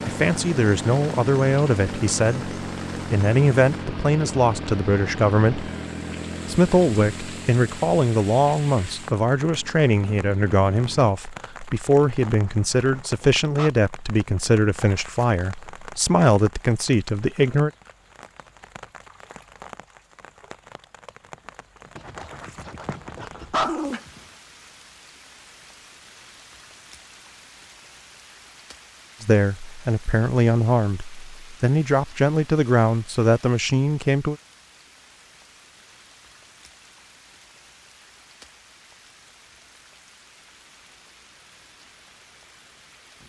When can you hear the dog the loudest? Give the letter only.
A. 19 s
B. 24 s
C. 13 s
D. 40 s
B.